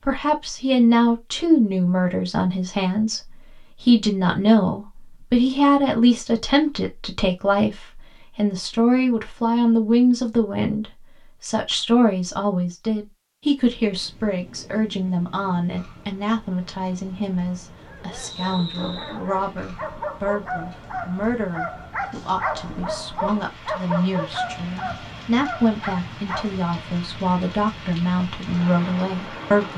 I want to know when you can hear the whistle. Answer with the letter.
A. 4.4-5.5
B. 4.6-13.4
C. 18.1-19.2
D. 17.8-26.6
C.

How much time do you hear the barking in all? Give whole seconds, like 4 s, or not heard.
9 s.